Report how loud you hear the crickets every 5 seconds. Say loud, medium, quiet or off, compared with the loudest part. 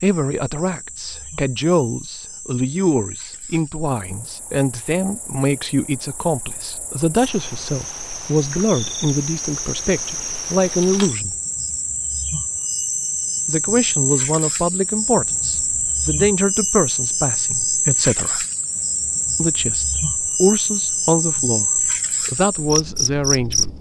quiet, medium, loud, loud, loud.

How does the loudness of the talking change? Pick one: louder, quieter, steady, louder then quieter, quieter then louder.
steady.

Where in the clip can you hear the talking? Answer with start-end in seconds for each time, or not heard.
0.0-11.3, 13.4-18.4, 19.4-23.7.